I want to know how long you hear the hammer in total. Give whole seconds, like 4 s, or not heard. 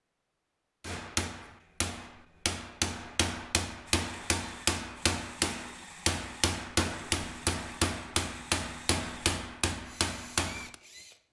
10 s.